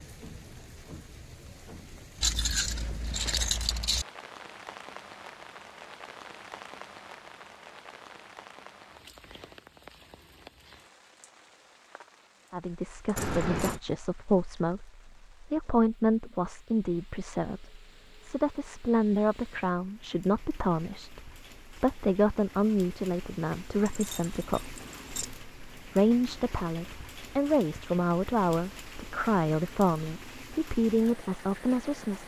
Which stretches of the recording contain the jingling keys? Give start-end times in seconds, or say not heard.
2.2-4.0, 13.2-13.8, 23.9-25.2.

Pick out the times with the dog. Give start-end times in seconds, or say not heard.
not heard.